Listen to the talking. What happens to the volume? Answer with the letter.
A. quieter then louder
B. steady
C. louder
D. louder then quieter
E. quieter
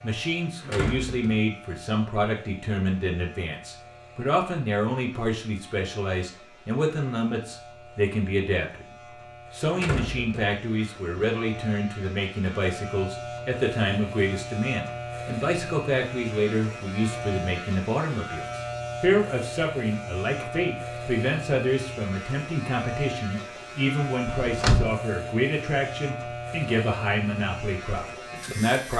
B.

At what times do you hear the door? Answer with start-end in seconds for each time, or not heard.
0.6-1.4, 9.7-10.6, 24.2-24.9.